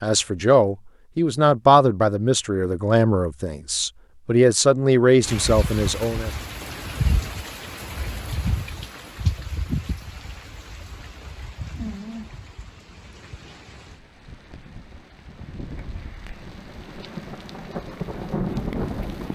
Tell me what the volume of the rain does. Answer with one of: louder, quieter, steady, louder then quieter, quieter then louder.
quieter then louder.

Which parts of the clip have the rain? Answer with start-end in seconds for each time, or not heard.
5.2-19.2.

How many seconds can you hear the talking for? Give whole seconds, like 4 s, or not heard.
6 s.